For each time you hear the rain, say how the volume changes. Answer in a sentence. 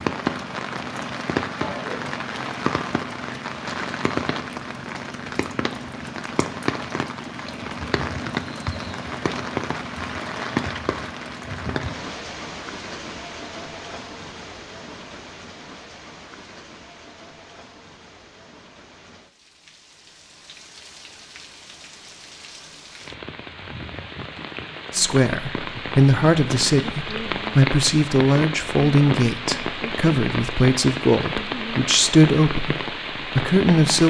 You can hear the rain from 0.0 to 34.0 s, getting quieter then louder.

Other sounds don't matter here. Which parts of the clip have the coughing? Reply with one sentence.
You can hear the coughing from 1.6 to 2.2 s.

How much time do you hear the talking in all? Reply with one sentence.
The talking can be heard for 9 seconds in total.